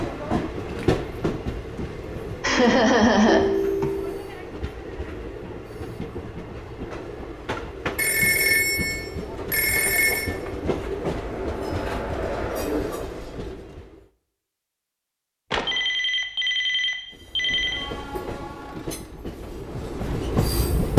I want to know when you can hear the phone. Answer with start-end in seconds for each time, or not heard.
3.2-4.2, 8.0-10.3, 15.5-17.9.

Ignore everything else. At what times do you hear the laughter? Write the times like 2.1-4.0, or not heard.
2.4-3.9.